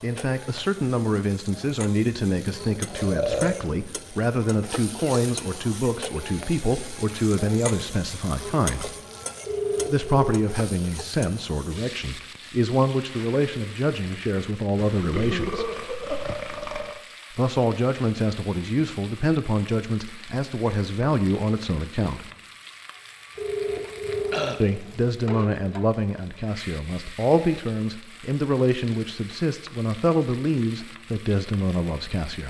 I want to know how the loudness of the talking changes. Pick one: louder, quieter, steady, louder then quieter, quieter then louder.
steady.